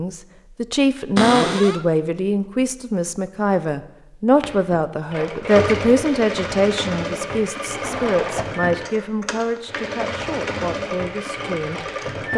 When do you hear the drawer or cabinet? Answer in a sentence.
The drawer or cabinet can be heard from 1.1 to 1.9 s and from 7.8 to 8.5 s.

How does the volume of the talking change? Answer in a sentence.
The volume of the talking goes down.